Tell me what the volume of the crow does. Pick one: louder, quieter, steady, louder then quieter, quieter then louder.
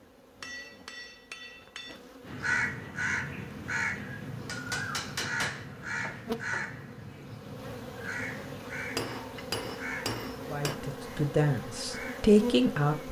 quieter.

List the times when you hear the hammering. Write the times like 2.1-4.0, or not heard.
0.4-1.9, 4.5-6.7, 8.9-10.8.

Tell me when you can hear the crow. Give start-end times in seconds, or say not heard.
2.2-12.3.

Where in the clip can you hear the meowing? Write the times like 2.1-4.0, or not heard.
not heard.